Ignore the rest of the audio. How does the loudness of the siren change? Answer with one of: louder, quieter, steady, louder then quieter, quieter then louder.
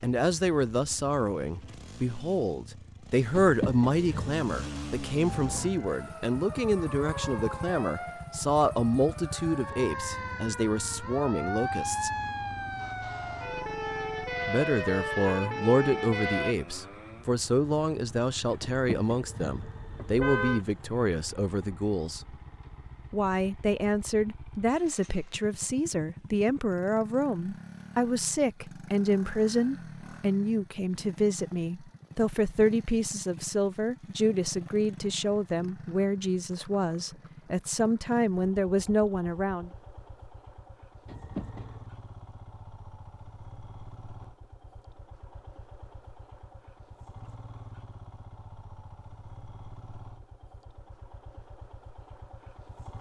louder.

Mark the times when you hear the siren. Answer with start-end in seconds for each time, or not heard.
5.2-16.6.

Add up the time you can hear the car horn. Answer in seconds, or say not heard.
4 s.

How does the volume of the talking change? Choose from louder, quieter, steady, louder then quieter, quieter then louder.
steady.